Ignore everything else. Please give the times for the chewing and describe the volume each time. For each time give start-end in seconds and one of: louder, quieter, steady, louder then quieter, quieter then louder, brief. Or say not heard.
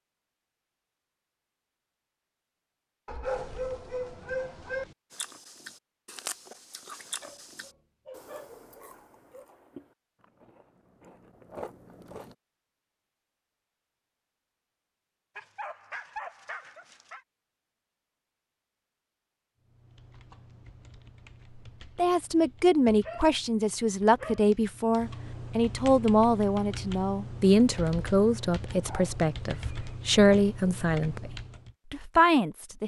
5.1-12.3 quieter then louder.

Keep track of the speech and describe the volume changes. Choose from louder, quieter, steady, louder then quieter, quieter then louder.
steady.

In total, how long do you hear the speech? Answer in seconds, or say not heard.
11 s.